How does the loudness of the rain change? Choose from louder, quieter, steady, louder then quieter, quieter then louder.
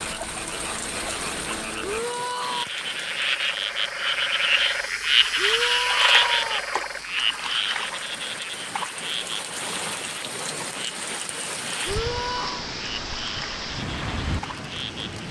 quieter then louder.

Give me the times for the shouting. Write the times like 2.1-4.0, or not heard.
1.8-2.6, 5.3-6.7, 11.8-12.7.